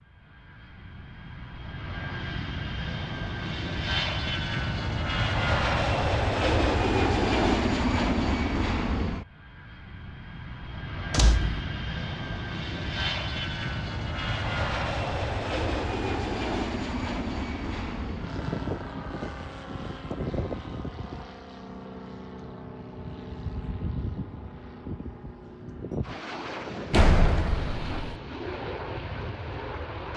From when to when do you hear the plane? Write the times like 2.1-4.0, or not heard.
0.1-30.1.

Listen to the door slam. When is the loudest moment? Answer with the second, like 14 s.
27 s.